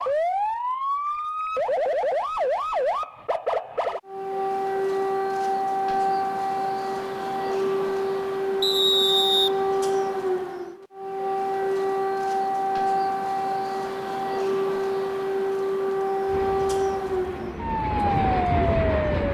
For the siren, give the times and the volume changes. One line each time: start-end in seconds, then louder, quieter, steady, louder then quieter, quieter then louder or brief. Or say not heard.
0.0-19.2 steady.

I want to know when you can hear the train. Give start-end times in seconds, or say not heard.
16.2-19.2.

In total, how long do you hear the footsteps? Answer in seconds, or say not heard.
not heard.